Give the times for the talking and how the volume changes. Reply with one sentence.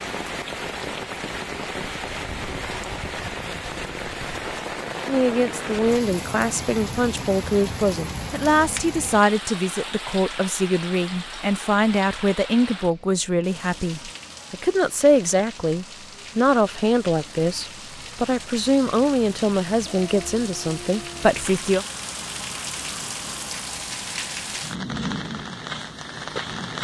The talking can be heard from 5.0 to 21.9 s, at a steady volume.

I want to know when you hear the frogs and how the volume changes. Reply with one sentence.
The frogs can't be heard in this clip.